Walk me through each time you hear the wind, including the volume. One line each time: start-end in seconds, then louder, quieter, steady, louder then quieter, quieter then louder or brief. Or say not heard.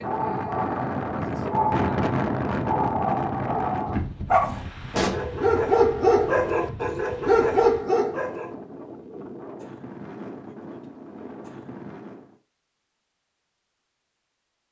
0.0-12.4 quieter.